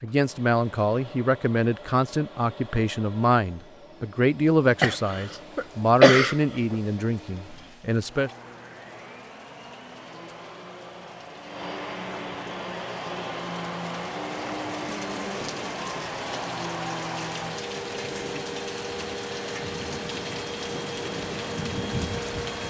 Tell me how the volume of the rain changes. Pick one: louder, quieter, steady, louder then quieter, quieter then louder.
louder.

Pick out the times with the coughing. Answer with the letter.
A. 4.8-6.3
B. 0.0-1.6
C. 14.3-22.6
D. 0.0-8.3
A.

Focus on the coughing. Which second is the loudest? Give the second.
6 s.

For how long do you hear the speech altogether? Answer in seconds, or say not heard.
8 s.